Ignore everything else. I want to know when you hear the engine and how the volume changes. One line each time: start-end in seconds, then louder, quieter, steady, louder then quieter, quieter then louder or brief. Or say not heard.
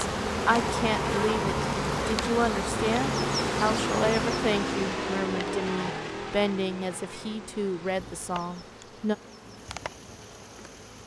2.7-11.0 quieter.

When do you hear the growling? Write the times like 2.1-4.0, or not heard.
0.6-2.2.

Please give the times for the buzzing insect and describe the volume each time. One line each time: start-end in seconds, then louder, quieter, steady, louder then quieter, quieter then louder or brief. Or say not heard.
0.0-11.0 quieter.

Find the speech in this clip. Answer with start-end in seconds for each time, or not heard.
0.0-9.2.